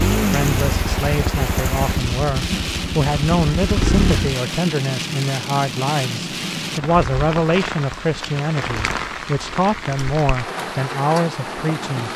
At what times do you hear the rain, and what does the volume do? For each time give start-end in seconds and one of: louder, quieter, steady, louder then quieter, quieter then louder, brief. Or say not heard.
0.0-12.1 steady.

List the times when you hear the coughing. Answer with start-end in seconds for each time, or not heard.
not heard.